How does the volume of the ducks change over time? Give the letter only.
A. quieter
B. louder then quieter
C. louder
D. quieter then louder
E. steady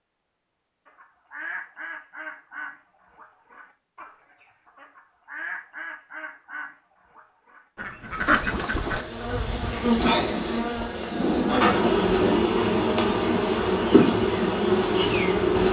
D.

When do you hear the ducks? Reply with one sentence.
The ducks can be heard from 0.8 to 9.1 s.